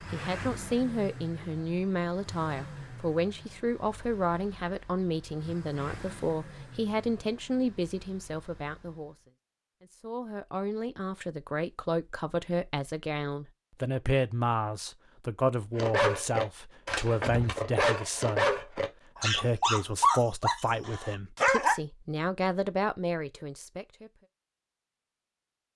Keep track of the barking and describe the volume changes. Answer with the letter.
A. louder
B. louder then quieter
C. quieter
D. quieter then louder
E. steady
B.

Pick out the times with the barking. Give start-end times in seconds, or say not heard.
15.8-21.8.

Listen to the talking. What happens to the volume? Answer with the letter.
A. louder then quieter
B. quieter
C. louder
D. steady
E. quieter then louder
D.